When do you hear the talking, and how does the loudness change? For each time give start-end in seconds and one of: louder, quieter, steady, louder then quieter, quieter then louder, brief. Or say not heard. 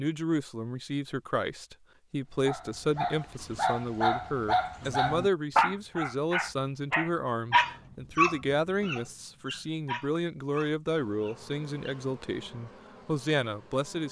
0.0-14.0 steady.